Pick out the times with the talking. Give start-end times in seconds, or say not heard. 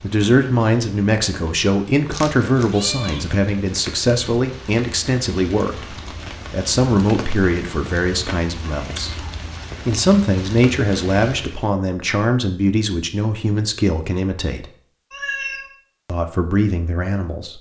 0.0-9.2, 9.8-14.7, 16.1-17.5.